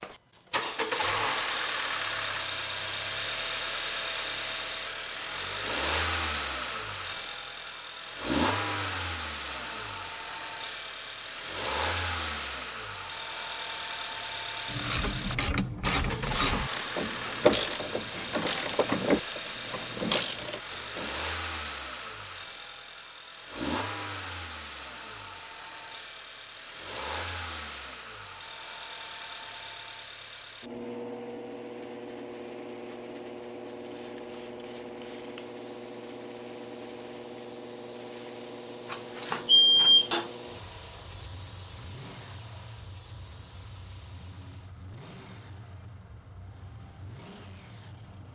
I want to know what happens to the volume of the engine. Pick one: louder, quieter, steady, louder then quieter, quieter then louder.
quieter.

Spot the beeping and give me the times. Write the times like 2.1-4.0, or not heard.
38.9-40.3.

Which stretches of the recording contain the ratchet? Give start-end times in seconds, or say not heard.
14.7-21.2.